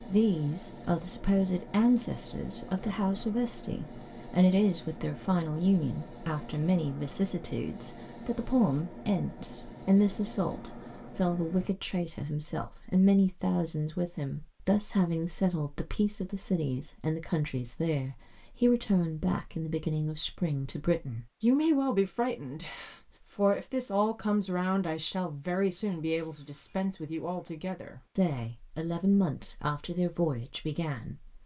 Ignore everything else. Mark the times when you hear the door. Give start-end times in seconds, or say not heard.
not heard.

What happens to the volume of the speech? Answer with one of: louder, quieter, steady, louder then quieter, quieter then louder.
steady.